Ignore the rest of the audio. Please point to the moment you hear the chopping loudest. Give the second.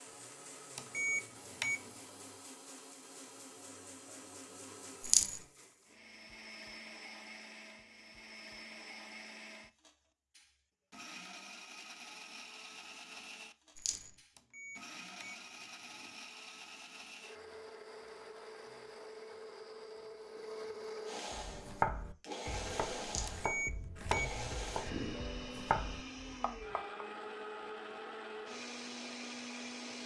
22 s.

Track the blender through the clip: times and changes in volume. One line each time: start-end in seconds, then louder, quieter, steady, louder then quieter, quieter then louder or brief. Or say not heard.
0.0-30.0 louder.